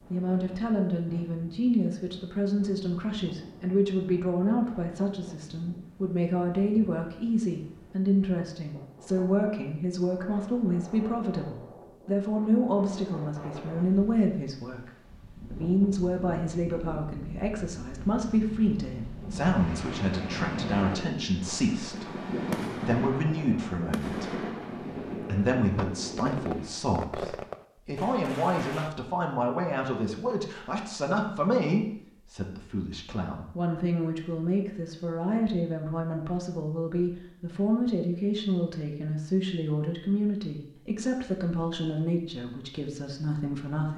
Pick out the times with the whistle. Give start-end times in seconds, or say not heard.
not heard.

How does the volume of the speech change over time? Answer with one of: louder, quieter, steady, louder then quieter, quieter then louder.
steady.